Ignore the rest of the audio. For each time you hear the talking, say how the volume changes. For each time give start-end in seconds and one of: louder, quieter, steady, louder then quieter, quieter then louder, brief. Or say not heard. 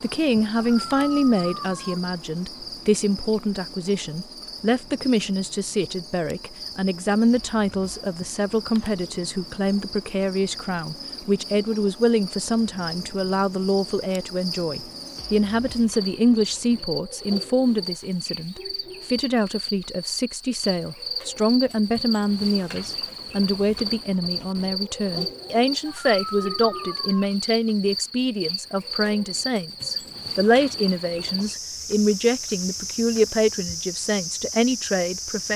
0.0-35.5 steady.